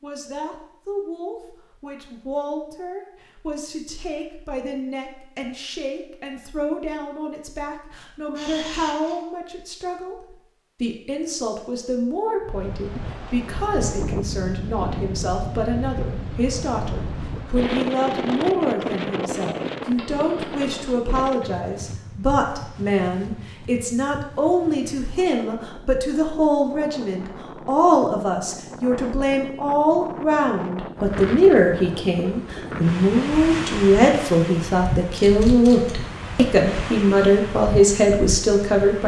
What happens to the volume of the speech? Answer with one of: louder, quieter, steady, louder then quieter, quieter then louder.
louder.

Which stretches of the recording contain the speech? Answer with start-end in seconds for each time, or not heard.
0.0-39.0.